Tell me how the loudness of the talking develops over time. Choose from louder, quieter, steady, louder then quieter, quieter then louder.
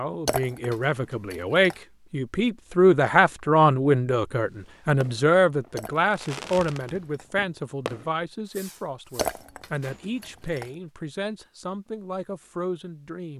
quieter.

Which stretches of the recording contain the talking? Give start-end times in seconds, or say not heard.
0.0-13.3.